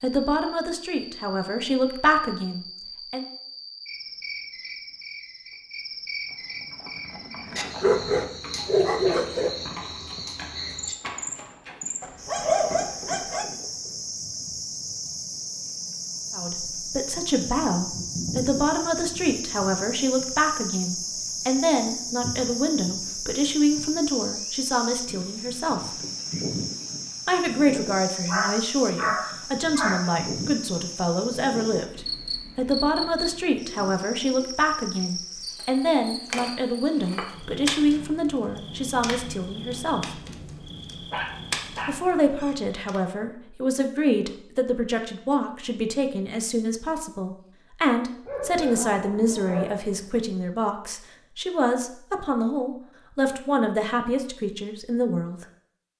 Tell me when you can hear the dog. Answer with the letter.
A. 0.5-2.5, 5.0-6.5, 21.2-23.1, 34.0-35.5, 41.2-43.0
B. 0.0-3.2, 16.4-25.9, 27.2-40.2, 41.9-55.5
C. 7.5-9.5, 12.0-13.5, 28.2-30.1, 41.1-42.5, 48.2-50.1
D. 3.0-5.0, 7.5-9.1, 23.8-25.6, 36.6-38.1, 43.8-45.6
C.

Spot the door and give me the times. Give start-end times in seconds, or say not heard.
not heard.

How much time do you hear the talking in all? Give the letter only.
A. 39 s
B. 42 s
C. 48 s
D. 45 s
A.